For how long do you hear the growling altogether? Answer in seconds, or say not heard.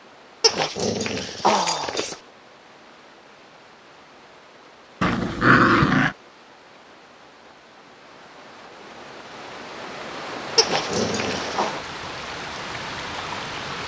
4 s.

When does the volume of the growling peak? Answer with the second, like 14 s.
6 s.